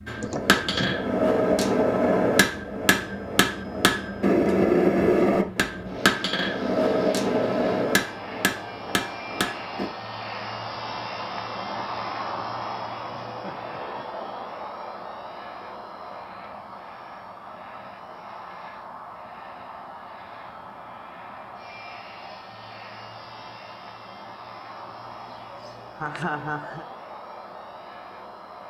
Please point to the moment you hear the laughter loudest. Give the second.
26 s.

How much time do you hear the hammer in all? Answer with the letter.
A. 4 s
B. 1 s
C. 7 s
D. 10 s
D.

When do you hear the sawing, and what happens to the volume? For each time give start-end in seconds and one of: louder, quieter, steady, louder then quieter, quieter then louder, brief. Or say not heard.
not heard.